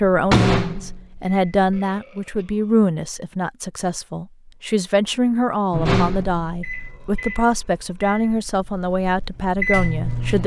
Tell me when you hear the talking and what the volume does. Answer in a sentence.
You can hear the talking from 0.0 to 10.4 s, at a steady volume.